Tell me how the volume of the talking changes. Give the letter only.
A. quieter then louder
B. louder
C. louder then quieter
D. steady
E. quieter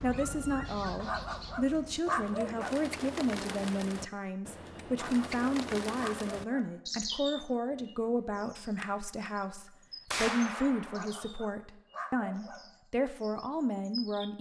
D.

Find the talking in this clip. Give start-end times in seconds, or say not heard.
0.0-14.3.